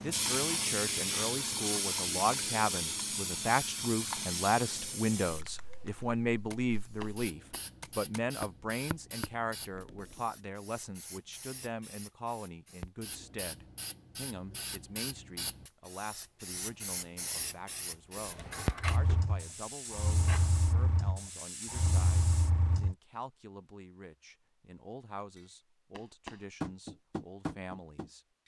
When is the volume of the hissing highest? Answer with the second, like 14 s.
1 s.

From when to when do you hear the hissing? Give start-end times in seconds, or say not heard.
0.0-22.9.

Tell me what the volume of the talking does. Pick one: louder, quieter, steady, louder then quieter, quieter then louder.
quieter.